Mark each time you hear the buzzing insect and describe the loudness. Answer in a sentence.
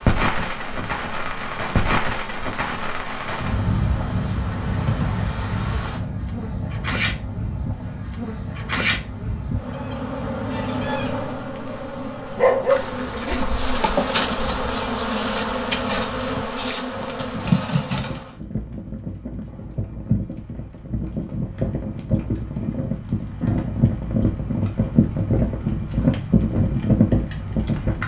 You can hear the buzzing insect from 0.0 to 18.4 s, getting louder.